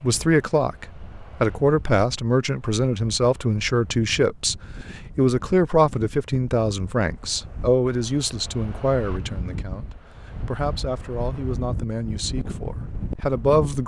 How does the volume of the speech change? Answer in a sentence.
The volume of the speech goes down.